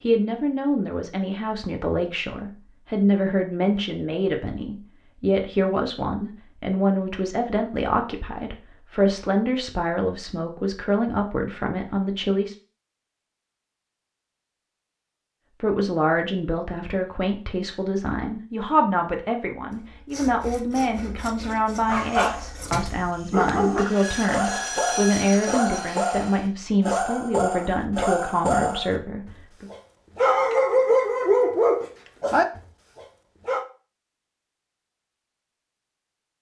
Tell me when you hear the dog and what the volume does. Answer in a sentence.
The dog can be heard from 21.9 to 33.6 s, getting louder.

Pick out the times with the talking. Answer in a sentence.
The talking can be heard from 0.0 to 12.6 s and from 15.6 to 29.6 s.